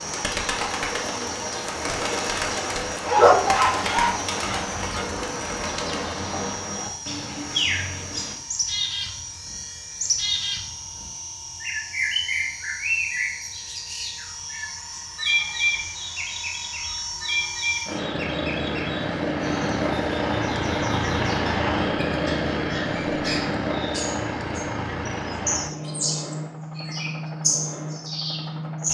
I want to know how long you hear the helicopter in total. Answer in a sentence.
The helicopter can be heard for 29 seconds in total.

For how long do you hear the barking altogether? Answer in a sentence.
You can hear the barking for 2 seconds altogether.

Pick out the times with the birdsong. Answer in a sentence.
You can hear the birdsong from 0.0 to 28.8 s.